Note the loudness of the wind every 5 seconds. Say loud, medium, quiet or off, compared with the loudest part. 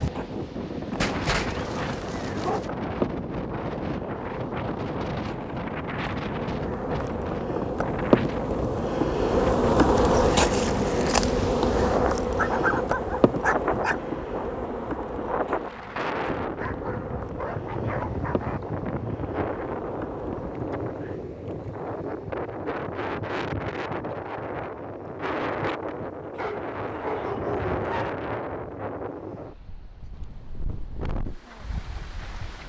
loud, loud, loud, loud, loud, loud, medium.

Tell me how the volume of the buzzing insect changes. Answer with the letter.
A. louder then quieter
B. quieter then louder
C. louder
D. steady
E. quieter
A.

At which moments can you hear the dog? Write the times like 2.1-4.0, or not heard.
1.0-2.7, 12.3-14.0, 16.6-18.6, 26.3-28.1.